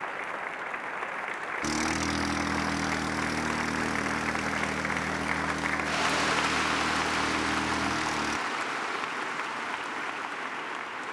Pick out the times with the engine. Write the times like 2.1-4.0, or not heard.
1.6-8.4.